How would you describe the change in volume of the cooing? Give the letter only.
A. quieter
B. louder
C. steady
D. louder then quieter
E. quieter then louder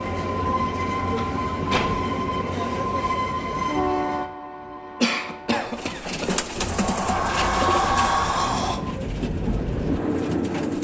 A.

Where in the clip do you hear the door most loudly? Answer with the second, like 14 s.
8 s.